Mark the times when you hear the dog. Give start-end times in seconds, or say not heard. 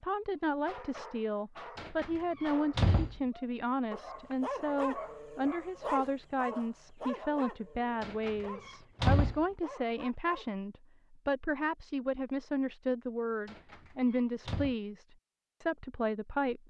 0.7-10.5.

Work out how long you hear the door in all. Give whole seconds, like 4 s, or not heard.
4 s.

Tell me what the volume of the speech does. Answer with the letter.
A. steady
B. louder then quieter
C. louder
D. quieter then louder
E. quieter
A.